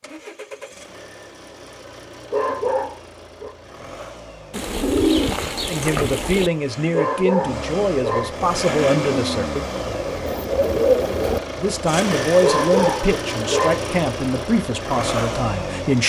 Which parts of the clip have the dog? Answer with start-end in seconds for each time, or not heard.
2.3-3.5, 6.9-8.3, 12.4-13.8.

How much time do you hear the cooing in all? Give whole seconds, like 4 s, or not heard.
4 s.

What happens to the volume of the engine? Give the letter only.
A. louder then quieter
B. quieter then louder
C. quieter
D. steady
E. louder
E.